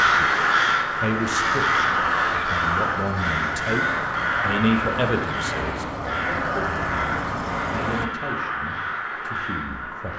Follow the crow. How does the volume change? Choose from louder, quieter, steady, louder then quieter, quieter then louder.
quieter.